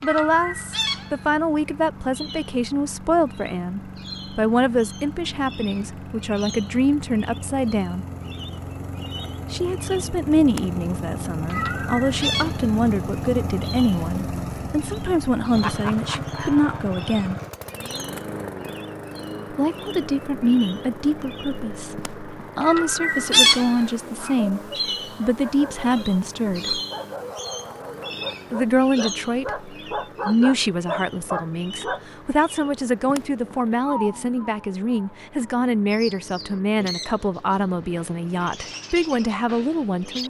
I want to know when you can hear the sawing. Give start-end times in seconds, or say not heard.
not heard.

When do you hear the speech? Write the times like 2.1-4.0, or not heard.
0.0-8.1, 9.5-17.4, 19.5-26.8, 28.5-40.2.